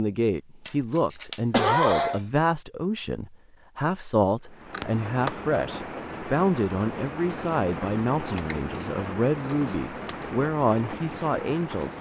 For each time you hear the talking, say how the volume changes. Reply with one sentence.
The talking can be heard from 0.0 to 11.9 s, at a steady volume.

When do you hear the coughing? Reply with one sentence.
You can hear the coughing from 1.5 to 2.2 s.